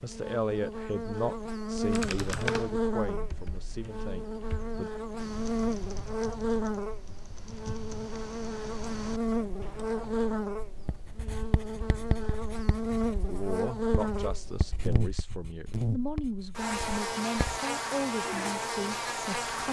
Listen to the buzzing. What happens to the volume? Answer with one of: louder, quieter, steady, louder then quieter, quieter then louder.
steady.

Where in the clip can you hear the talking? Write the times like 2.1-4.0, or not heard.
0.0-4.9, 13.2-19.6.